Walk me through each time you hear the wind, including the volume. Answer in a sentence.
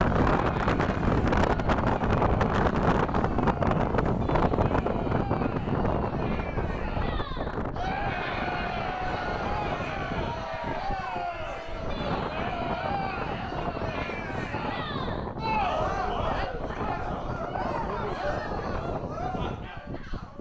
The wind can be heard from 0.0 to 20.3 s, getting quieter.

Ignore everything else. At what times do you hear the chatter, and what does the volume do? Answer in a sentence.
You can hear the chatter from 0.0 to 20.3 s, getting louder.